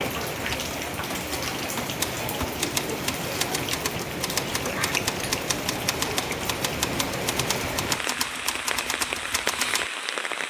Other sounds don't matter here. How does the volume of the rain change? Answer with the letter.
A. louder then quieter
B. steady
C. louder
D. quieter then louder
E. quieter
B.